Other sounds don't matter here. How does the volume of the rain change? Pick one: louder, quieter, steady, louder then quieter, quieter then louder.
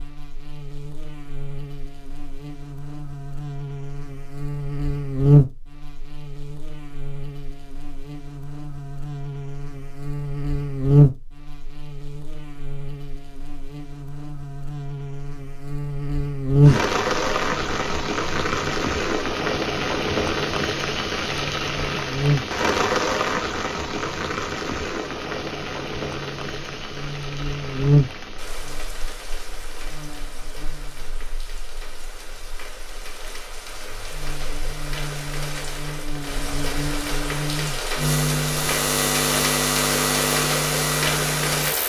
quieter then louder.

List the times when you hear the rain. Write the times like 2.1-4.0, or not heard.
16.6-41.8.